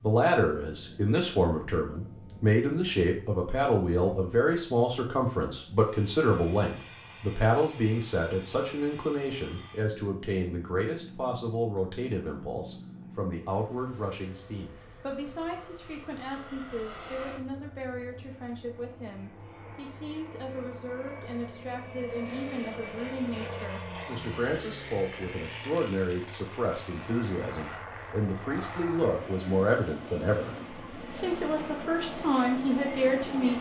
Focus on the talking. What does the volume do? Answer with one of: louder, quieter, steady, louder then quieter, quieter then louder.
quieter then louder.